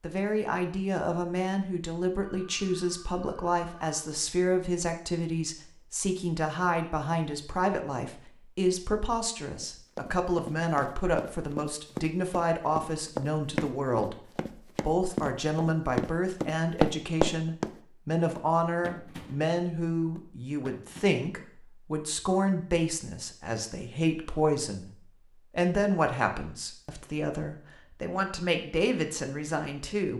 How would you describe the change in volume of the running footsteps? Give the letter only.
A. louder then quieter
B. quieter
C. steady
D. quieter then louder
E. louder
A.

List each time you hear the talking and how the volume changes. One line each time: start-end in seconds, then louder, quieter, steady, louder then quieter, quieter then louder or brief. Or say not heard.
0.0-30.1 steady.